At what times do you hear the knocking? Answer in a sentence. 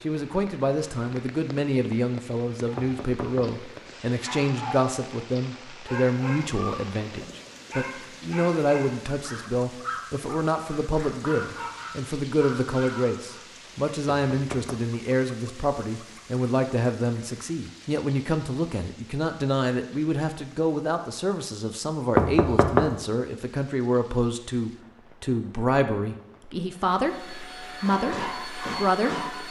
You can hear the knocking from 2.8 to 3.6 s, from 14.3 to 14.9 s and from 22.1 to 22.9 s.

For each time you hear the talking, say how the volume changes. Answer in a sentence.
You can hear the talking from 0.0 to 29.4 s, at a steady volume.